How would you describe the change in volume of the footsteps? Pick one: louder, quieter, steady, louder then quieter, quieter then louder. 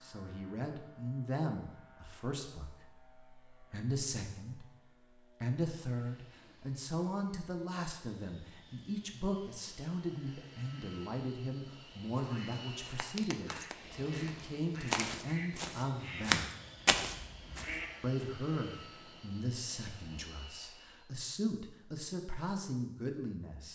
quieter then louder.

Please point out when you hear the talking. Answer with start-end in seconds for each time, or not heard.
0.0-4.7, 5.4-16.5, 18.0-23.6.